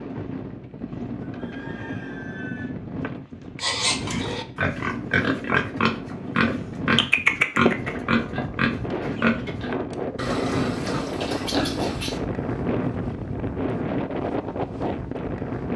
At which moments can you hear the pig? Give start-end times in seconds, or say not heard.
3.6-12.2.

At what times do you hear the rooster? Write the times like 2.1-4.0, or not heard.
1.2-2.7.